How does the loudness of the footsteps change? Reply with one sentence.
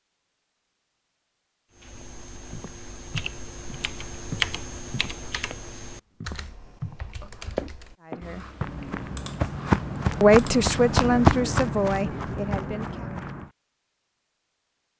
The loudness of the footsteps goes up, then down.